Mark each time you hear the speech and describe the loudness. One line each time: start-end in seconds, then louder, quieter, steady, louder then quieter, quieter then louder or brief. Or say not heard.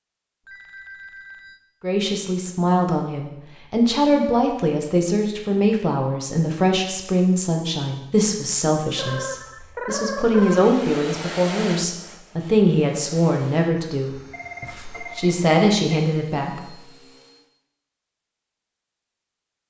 1.8-16.8 steady.